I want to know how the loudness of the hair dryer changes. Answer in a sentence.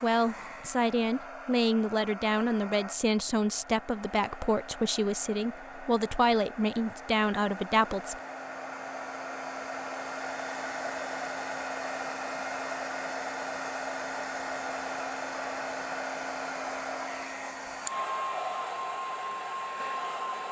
The volume of the hair dryer goes up.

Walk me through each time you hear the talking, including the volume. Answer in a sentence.
You can hear the talking from 0.0 to 8.2 s, at a steady volume.